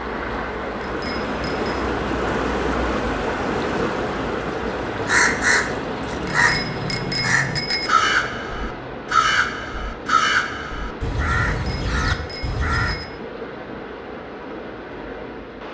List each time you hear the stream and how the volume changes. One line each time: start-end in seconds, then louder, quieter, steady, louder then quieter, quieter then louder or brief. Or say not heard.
0.0-15.6 quieter.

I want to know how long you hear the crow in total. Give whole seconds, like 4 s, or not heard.
8 s.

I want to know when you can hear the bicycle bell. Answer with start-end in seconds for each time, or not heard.
0.8-1.7, 6.2-7.9, 11.5-13.1.